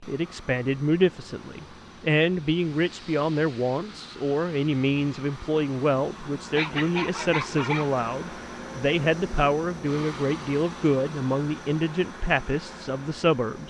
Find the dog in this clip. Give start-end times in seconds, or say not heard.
6.5-7.9.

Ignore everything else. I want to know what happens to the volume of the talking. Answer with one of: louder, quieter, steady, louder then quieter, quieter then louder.
steady.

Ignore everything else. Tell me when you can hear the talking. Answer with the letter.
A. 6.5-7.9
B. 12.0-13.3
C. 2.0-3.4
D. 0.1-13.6
D.